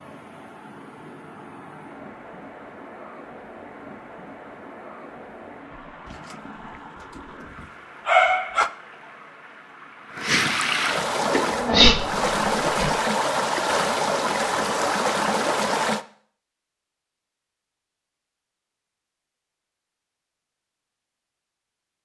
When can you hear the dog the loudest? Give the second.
8 s.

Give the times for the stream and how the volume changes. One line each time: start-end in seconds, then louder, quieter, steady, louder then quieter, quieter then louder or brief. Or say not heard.
0.0-16.1 louder.